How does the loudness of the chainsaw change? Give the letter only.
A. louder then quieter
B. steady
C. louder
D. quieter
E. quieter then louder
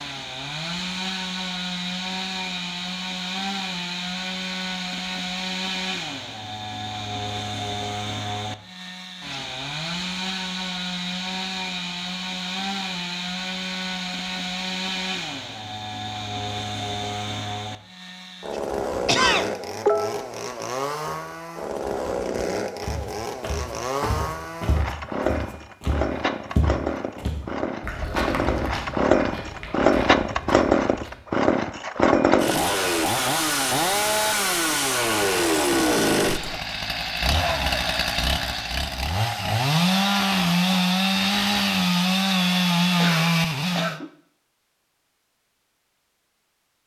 C.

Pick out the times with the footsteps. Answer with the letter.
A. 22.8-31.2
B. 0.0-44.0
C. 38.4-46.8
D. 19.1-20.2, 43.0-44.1
A.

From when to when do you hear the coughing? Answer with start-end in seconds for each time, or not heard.
19.1-20.2, 43.0-44.1.